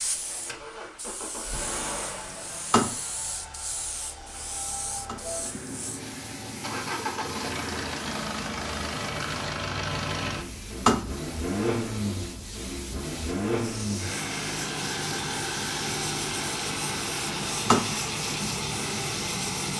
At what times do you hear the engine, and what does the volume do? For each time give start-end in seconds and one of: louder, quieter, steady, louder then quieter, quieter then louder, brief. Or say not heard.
0.0-19.7 louder.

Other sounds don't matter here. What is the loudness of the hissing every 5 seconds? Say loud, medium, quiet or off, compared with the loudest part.
loud, medium, medium, loud.